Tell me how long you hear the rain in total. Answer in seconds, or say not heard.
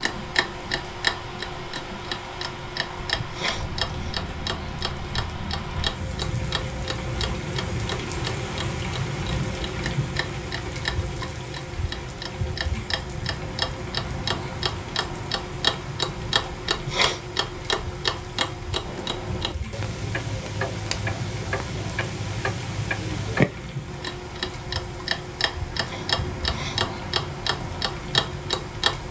29 s.